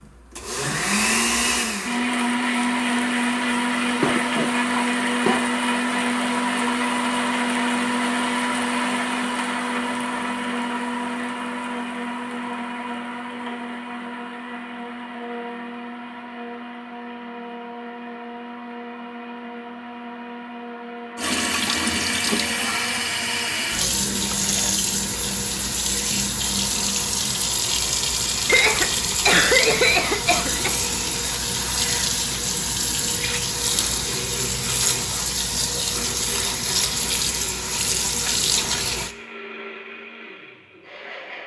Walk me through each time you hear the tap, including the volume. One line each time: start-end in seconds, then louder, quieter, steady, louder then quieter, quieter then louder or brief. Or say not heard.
21.1-39.1 steady.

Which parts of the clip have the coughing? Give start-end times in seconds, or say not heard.
4.0-5.5, 28.4-30.8.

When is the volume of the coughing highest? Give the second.
29 s.